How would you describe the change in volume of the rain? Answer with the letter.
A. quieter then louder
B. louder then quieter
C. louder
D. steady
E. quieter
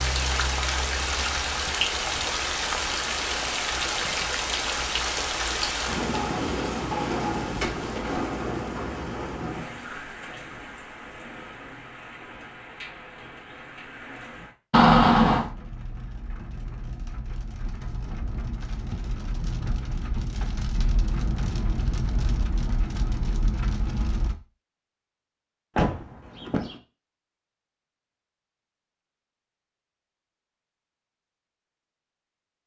A.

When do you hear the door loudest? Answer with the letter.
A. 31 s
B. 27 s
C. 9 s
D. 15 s
D.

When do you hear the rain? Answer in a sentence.
The rain can be heard from 0.0 to 24.4 s.